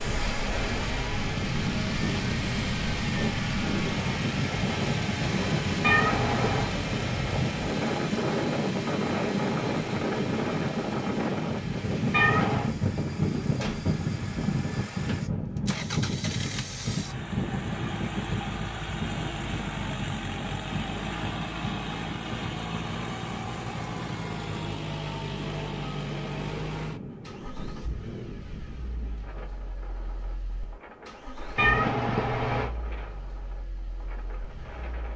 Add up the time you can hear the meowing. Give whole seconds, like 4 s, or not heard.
3 s.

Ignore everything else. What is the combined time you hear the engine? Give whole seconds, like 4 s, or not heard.
35 s.